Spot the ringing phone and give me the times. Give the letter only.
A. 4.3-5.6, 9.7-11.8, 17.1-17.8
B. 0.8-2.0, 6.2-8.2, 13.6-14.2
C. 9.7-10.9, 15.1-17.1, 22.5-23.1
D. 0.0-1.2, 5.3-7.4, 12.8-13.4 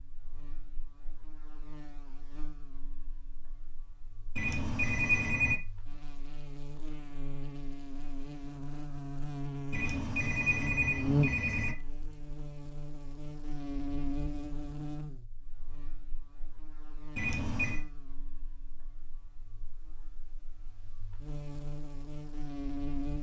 A.